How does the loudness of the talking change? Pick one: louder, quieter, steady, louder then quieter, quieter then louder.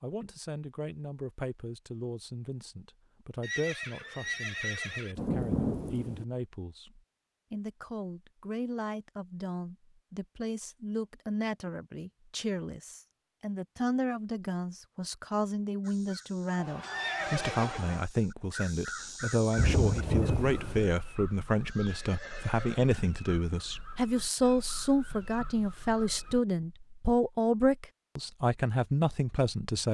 louder.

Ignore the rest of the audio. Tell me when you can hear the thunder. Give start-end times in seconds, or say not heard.
5.2-6.2, 19.6-20.9.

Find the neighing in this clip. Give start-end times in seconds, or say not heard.
3.4-5.2, 16.6-18.1, 21.6-22.9.